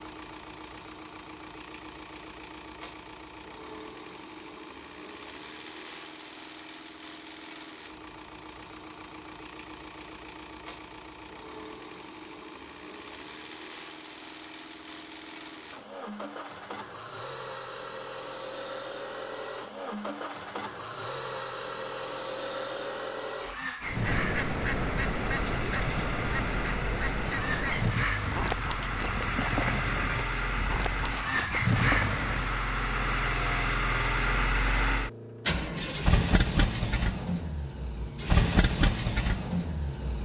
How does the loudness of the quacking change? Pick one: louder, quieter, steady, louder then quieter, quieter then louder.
steady.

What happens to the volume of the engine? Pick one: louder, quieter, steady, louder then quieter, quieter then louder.
louder.